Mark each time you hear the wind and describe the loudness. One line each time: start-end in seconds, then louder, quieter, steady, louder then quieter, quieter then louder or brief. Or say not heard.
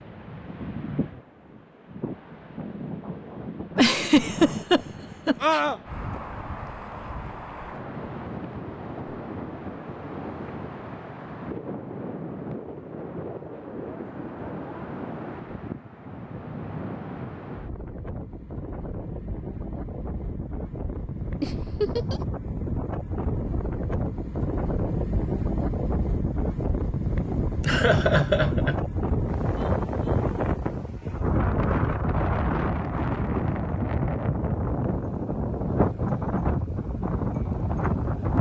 0.0-38.3 louder.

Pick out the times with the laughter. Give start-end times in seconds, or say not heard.
3.8-5.6, 21.4-22.2, 27.6-28.8.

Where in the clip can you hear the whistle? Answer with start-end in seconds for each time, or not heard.
not heard.